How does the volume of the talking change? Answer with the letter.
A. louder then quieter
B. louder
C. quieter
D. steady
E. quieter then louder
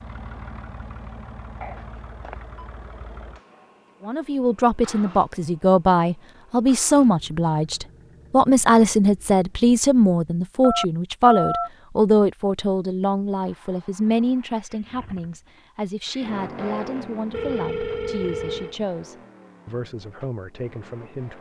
C.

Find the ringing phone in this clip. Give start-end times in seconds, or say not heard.
1.6-2.6, 10.6-11.7, 17.3-18.8.